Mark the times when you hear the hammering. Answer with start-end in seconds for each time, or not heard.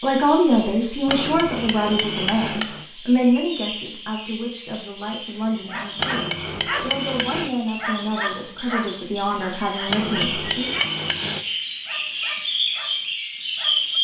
1.1-2.9, 6.0-7.5, 9.8-11.4.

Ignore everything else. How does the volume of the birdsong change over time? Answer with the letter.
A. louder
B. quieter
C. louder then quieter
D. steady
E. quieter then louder
A.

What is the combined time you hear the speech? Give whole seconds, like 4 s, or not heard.
11 s.